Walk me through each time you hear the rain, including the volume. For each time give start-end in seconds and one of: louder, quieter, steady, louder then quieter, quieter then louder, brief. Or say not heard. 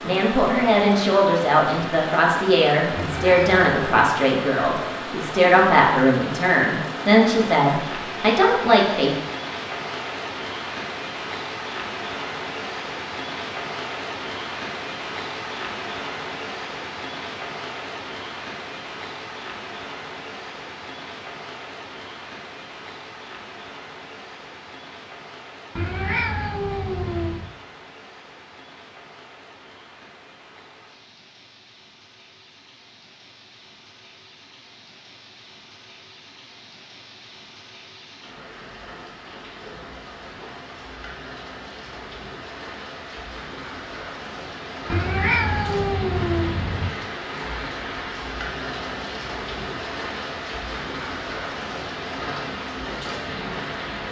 0.0-54.0 quieter then louder.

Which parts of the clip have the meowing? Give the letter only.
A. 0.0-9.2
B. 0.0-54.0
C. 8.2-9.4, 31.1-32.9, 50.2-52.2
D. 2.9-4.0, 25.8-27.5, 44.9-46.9
D.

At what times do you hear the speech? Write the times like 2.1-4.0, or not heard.
0.0-9.2.